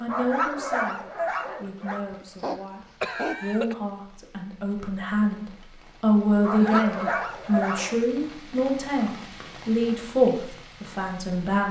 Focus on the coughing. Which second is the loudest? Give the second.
3 s.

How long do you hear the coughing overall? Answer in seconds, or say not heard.
2 s.